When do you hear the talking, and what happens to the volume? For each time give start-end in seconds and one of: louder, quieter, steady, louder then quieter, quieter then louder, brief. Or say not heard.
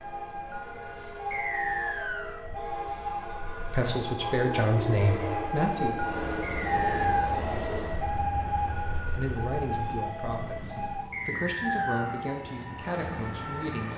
3.7-6.0 brief
9.2-13.9 quieter then louder.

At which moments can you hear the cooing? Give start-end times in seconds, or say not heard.
not heard.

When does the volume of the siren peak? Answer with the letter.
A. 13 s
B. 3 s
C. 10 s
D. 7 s
D.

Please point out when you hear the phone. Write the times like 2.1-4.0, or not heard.
not heard.